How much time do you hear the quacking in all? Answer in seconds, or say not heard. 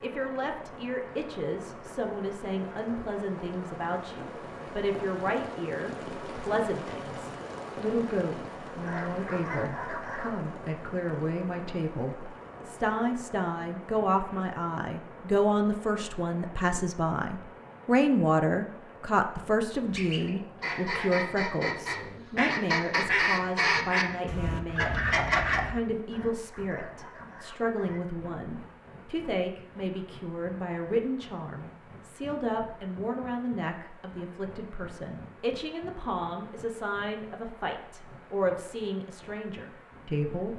6 s.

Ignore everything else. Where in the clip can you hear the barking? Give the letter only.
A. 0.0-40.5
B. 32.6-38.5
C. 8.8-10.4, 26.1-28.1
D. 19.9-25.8
C.